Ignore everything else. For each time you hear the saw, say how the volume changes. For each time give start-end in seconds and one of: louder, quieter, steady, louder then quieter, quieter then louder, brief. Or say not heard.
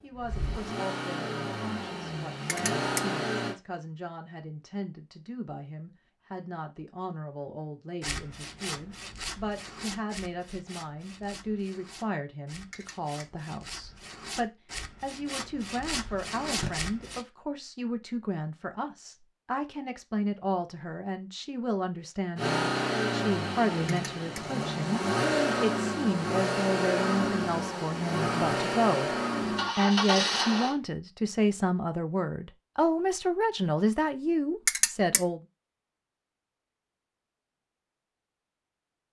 8.0-17.2 quieter then louder.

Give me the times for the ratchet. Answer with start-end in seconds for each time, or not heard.
2.5-3.0, 12.7-13.2, 23.9-24.4, 34.6-35.2.